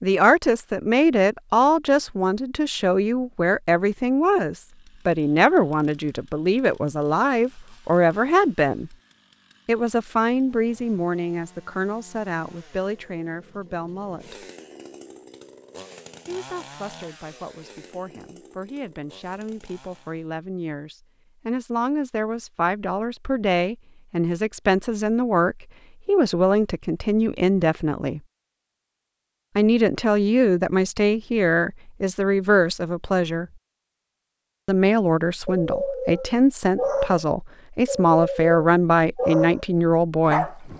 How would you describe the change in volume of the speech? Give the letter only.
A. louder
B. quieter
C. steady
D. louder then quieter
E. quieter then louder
E.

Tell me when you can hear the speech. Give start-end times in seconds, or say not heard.
0.0-8.9, 9.7-14.4, 16.2-28.2, 29.6-33.5, 34.6-40.6.